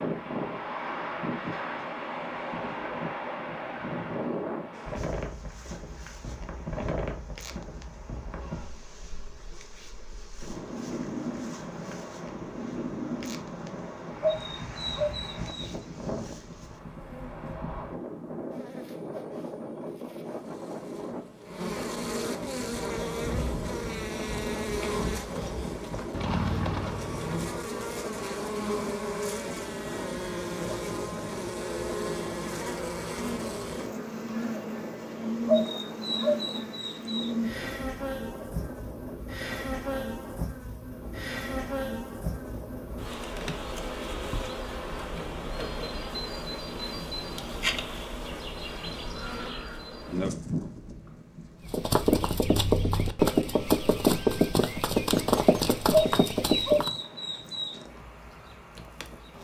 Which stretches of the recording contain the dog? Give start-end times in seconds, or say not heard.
14.2-15.7, 35.5-37.3, 55.9-57.8.